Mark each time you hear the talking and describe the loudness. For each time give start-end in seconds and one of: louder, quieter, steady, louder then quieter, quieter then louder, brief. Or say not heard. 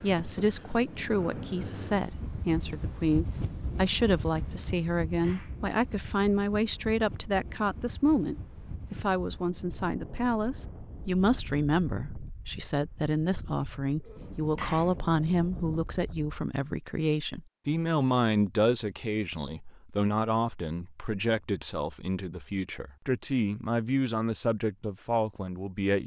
0.0-26.0 steady.